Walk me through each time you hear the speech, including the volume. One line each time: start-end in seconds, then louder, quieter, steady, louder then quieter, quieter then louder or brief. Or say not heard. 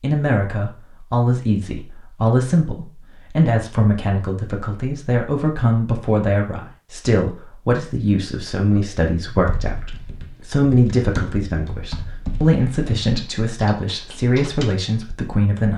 0.0-15.7 steady.